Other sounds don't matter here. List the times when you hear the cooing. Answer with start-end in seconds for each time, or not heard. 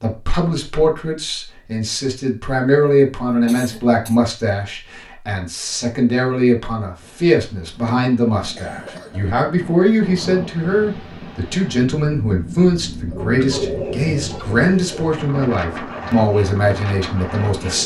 13.1-15.1.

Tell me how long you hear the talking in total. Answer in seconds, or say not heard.
18 s.